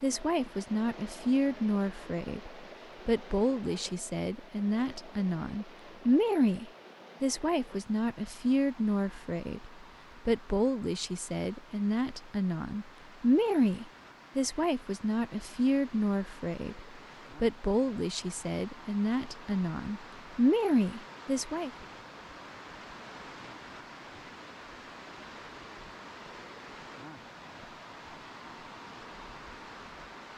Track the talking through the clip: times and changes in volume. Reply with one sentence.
The talking can be heard from 0.0 to 21.7 s, at a steady volume.